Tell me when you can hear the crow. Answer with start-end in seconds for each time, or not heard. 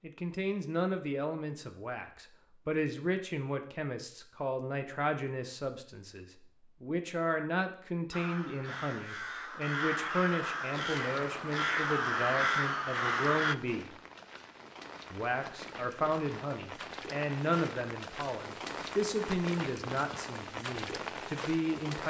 8.1-13.6.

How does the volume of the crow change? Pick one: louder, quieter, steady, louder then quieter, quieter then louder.
louder.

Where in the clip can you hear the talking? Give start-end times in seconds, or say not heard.
0.0-13.9, 15.1-22.0.